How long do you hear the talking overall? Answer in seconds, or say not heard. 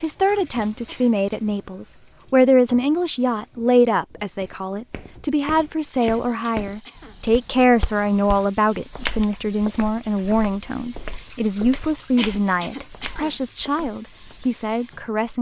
15 s.